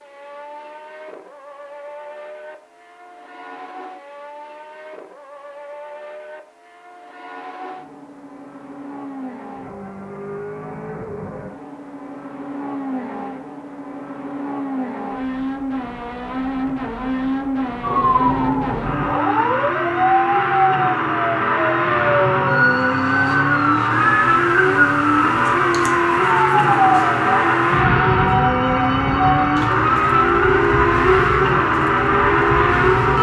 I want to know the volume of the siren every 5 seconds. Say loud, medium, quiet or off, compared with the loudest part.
off, off, off, loud, loud, loud, loud.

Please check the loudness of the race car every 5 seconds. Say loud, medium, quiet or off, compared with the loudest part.
quiet, quiet, quiet, medium, loud, loud, loud.